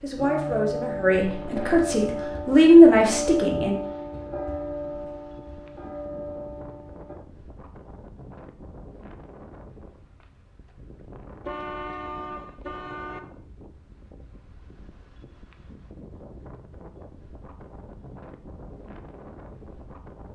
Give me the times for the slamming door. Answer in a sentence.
You can't hear the slamming door here.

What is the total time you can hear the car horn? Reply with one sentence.
The car horn can be heard for 2 seconds in total.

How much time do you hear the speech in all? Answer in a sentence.
The speech can be heard for 4 seconds in total.